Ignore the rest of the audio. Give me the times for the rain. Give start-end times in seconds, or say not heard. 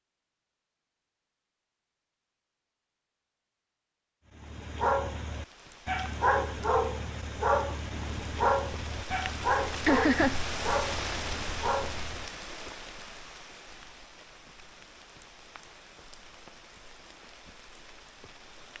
5.2-18.7.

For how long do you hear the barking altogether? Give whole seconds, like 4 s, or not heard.
8 s.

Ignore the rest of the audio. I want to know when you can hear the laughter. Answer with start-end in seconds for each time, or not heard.
9.8-10.3.